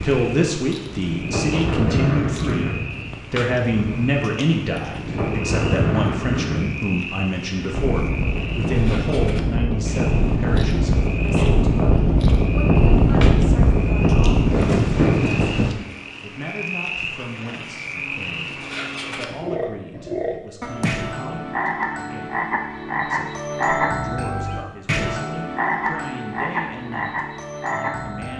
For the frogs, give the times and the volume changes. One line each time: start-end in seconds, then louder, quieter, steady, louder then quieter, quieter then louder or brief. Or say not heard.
0.0-28.3 louder.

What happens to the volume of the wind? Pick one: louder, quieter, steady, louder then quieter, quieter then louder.
louder.